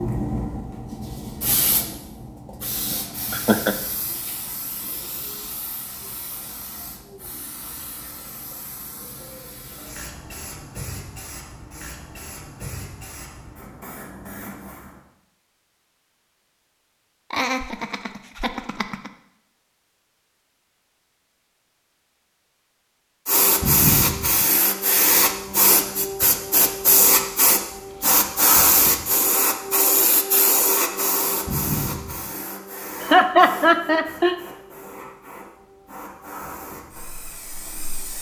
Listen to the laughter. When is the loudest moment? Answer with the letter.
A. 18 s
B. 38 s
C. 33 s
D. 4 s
C.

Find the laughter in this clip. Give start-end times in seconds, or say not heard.
2.9-3.8, 17.3-19.1, 33.0-34.4.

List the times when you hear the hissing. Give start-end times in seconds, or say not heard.
0.0-14.9, 23.2-38.1.